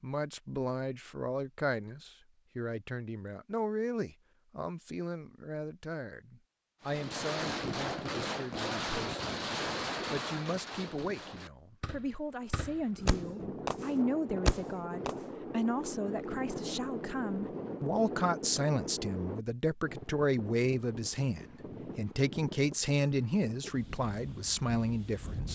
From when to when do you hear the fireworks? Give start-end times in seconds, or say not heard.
6.8-15.2.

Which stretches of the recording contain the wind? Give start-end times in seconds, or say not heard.
12.3-25.5.